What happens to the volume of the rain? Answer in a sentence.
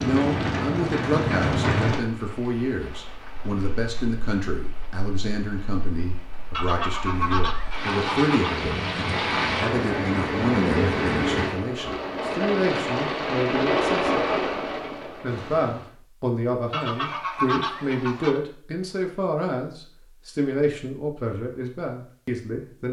The loudness of the rain goes down, then up.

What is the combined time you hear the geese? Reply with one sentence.
The geese can be heard for 4 seconds in total.